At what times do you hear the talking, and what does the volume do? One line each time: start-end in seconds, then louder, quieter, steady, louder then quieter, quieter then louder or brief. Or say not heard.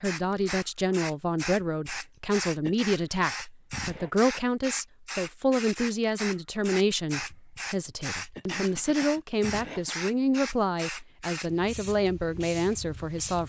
0.0-13.4 steady.